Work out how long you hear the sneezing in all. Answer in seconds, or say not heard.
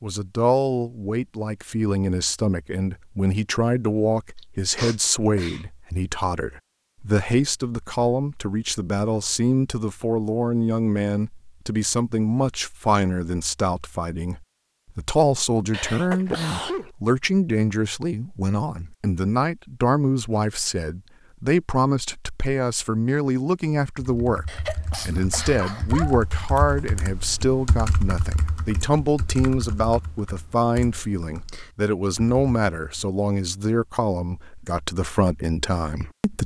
4 s.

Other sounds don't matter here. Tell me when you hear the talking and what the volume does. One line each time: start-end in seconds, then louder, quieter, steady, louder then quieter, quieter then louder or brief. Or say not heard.
0.0-36.4 steady.